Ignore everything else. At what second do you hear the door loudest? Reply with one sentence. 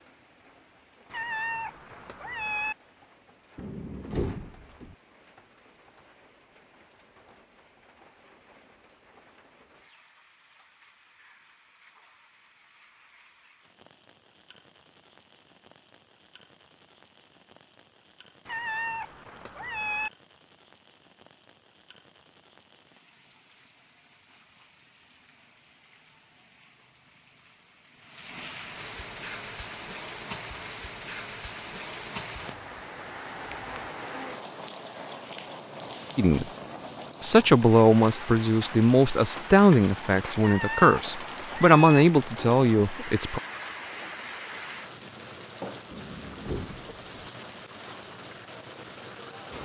The volume of the door peaks at 4 seconds.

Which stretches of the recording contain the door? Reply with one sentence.
You can hear the door from 3.5 to 5.0 s and from 45.9 to 47.3 s.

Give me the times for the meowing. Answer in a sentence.
The meowing can be heard from 1.1 to 2.8 s, from 18.4 to 20.1 s and from 40.4 to 42.0 s.